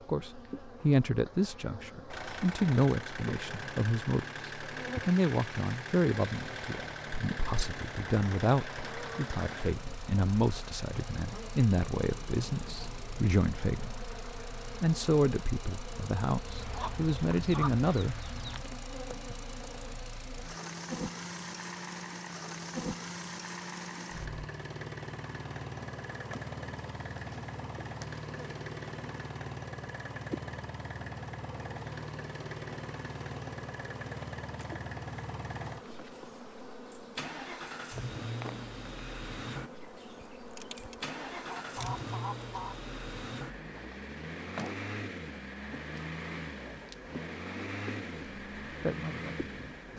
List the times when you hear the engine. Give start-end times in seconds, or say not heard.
2.1-49.9.